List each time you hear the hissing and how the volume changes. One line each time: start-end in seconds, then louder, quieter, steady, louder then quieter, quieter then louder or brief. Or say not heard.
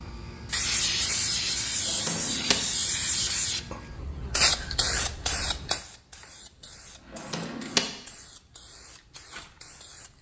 0.0-10.1 quieter.